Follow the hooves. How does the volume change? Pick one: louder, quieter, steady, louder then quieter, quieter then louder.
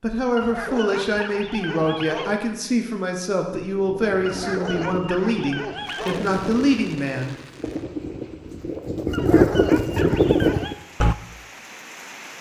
louder.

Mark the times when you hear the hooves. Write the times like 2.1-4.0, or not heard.
3.5-11.2.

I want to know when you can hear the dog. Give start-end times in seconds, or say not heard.
0.3-2.4, 4.2-6.2, 9.1-10.8.